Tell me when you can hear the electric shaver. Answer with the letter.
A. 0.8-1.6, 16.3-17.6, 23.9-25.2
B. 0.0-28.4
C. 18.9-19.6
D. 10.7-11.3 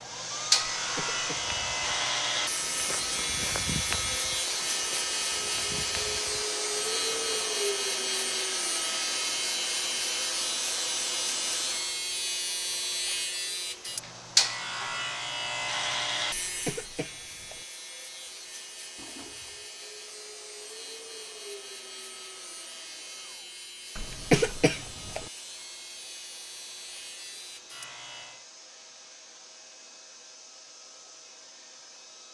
B.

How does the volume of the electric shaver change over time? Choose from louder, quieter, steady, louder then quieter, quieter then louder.
quieter.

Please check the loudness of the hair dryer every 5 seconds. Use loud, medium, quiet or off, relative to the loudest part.
loud, loud, loud, quiet, quiet, quiet, quiet.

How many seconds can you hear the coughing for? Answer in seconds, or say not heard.
3 s.